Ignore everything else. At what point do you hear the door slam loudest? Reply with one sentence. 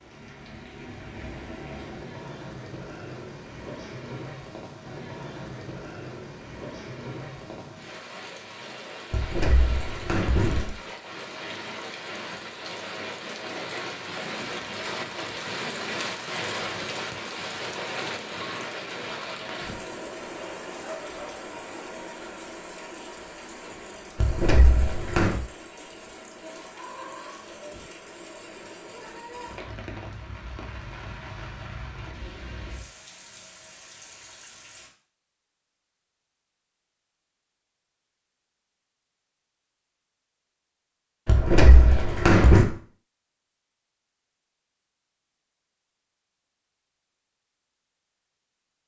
The volume of the door slam peaks at 42 seconds.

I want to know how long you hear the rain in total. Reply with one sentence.
You can hear the rain for 35 seconds altogether.